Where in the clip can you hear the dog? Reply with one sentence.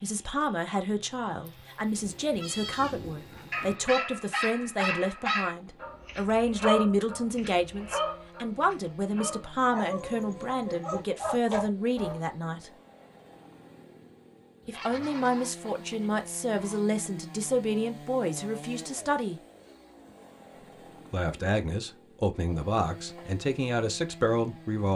You can hear the dog from 3.4 to 12.2 s.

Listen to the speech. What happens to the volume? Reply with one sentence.
The volume of the speech stays about the same.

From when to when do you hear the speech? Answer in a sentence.
You can hear the speech from 0.0 to 12.7 s, from 14.7 to 19.4 s and from 21.1 to 24.9 s.